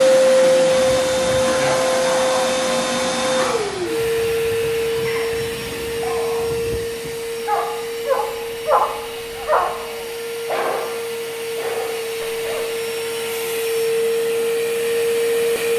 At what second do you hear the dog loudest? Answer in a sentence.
The loudest moment of the dog is at 9 seconds.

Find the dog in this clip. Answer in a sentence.
The dog can be heard from 0.9 to 12.7 s.